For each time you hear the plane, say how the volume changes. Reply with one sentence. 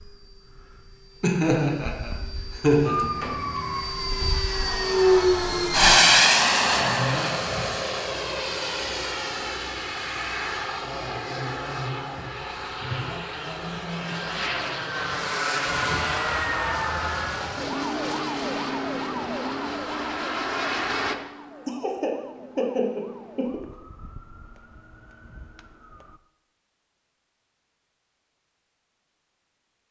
You can hear the plane from 0.0 to 21.1 s, getting louder then quieter.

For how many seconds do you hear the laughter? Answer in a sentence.
You can hear the laughter for 4 seconds altogether.